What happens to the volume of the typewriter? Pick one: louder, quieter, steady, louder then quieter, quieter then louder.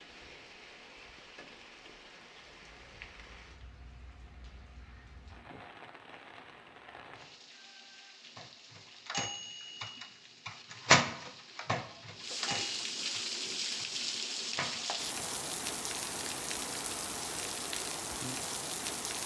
louder then quieter.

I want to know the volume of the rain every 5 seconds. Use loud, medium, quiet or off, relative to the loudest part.
quiet, quiet, loud, loud.